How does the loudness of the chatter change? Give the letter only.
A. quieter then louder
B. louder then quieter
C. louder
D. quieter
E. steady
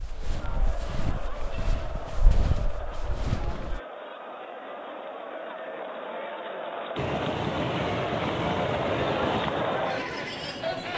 C.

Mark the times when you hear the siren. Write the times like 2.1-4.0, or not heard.
not heard.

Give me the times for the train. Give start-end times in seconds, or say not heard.
7.0-10.9.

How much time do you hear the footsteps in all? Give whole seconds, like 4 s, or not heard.
4 s.